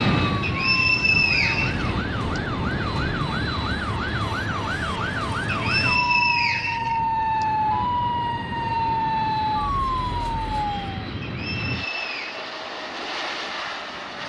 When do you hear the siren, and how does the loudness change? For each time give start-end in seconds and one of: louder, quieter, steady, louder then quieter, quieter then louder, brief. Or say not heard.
0.1-11.1 louder.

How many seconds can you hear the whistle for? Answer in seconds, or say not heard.
5 s.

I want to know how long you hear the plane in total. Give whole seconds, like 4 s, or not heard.
14 s.